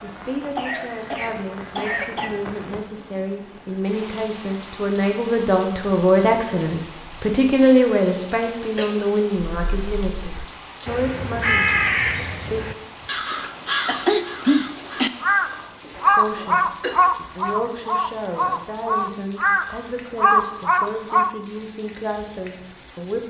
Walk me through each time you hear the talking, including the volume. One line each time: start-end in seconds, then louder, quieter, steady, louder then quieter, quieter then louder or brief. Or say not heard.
0.0-12.6 louder then quieter
16.1-23.2 steady.